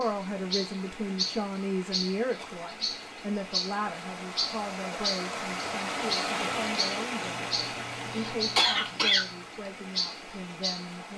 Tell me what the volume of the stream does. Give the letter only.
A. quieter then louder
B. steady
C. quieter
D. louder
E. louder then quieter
E.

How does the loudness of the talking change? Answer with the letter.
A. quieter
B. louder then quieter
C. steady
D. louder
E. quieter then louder
A.